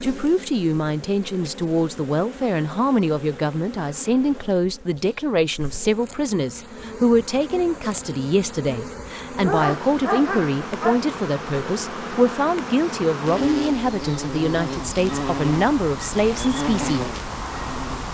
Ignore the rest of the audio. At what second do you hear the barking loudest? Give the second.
10 s.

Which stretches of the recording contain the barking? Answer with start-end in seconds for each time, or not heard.
9.4-11.0.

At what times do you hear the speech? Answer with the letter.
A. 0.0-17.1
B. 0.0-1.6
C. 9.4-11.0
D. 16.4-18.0
A.